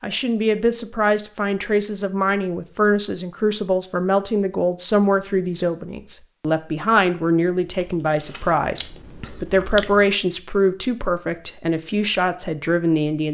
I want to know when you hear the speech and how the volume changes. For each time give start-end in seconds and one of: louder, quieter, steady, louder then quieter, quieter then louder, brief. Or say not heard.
0.0-13.2 steady.